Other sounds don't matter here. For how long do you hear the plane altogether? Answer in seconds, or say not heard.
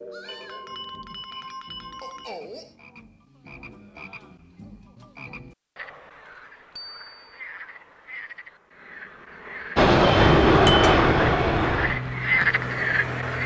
4 s.